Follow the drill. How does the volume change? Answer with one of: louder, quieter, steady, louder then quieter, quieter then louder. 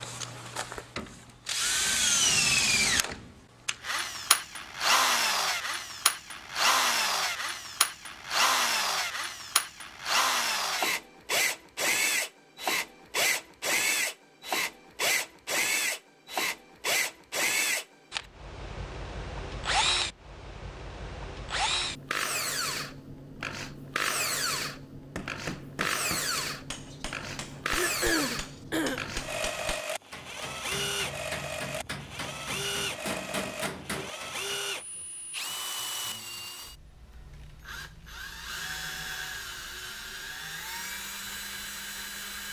quieter.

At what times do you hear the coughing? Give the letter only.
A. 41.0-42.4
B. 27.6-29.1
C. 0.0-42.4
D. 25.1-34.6
B.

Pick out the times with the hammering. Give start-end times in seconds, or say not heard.
25.1-34.6.